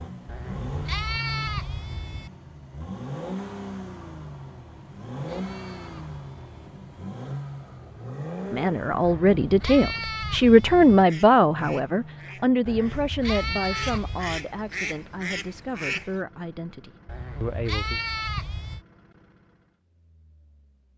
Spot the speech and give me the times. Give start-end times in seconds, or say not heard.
8.5-18.0.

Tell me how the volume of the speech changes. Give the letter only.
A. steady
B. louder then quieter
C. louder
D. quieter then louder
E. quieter
E.